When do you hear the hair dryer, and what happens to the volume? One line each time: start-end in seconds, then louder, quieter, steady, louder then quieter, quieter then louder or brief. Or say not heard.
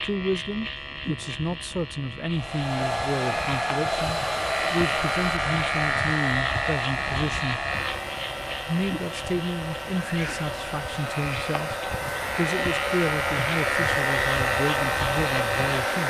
2.4-16.0 quieter then louder.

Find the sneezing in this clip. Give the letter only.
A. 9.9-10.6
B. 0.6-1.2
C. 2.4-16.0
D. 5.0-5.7
A.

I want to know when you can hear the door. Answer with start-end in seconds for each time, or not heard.
not heard.